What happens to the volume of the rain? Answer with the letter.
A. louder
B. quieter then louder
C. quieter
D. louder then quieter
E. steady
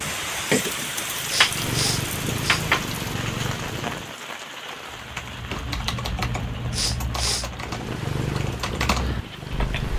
C.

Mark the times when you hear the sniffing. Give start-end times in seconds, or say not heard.
1.2-2.6, 6.7-7.5.